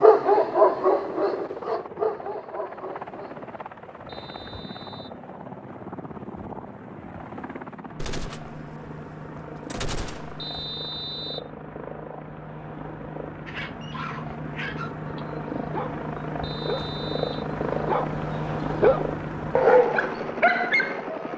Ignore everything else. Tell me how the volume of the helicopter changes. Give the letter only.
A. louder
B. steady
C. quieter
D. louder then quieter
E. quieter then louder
A.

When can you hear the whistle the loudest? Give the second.
11 s.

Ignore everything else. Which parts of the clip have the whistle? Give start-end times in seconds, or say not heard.
4.0-5.2, 10.3-11.5, 16.4-17.4.